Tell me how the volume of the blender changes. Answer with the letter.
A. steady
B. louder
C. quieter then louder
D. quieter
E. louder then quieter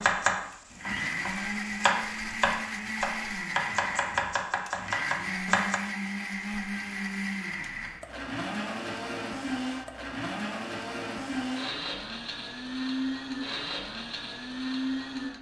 A.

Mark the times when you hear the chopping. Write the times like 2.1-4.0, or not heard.
0.0-5.8.